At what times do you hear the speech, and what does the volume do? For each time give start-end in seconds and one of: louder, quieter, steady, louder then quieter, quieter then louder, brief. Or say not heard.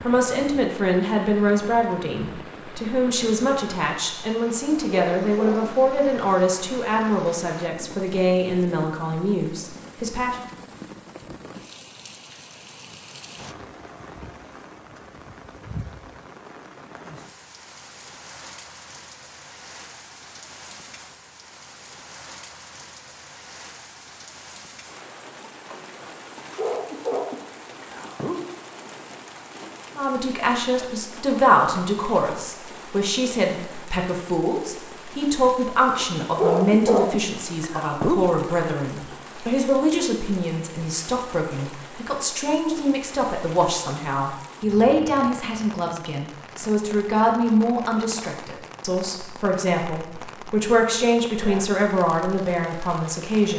0.0-10.3 steady
29.9-53.5 steady.